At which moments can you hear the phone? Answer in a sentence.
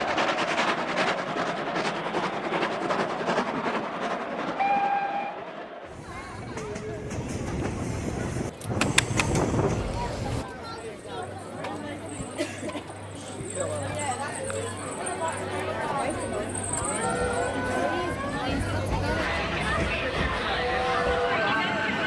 The phone can be heard from 8.8 to 9.4 s.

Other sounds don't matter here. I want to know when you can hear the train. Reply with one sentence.
The train can be heard from 0.0 to 10.4 s and from 17.0 to 22.0 s.